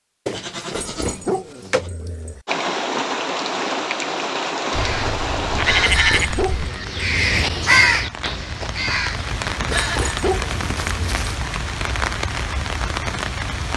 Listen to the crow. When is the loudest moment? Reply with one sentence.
The loudest moment of the crow is at 8 seconds.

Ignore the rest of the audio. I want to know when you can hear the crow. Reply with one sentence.
The crow can be heard from 4.7 to 10.2 s.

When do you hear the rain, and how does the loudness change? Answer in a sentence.
The rain can be heard from 2.5 to 13.7 s, getting quieter then louder.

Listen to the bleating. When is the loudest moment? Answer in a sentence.
The loudest moment of the bleating is at 6 seconds.